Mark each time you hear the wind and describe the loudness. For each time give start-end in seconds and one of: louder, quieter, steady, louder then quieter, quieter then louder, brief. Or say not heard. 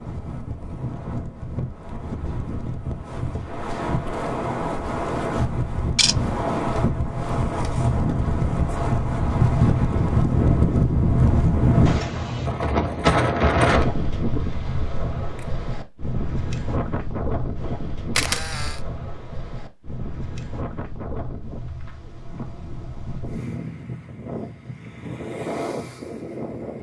0.0-26.7 louder then quieter.